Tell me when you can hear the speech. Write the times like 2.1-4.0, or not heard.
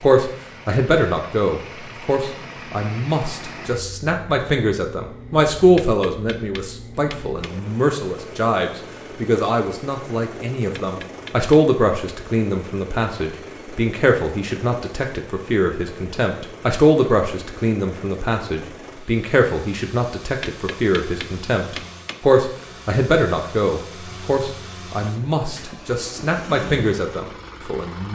0.0-28.0.